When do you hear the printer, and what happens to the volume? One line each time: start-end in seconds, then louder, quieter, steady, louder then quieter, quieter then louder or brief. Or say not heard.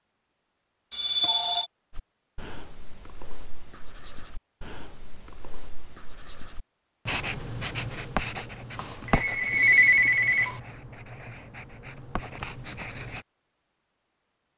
not heard.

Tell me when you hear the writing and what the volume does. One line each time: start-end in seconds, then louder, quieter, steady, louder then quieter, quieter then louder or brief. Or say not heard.
1.9-13.2 louder then quieter.